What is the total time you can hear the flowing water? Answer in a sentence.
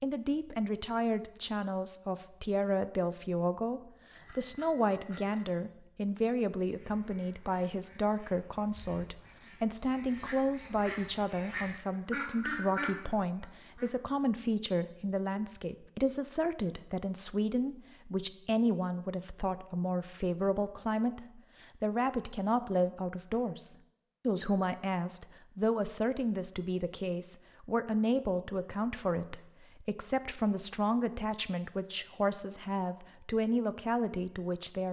The flowing water can't be heard in this clip.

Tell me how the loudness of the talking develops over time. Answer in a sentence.
The volume of the talking stays about the same.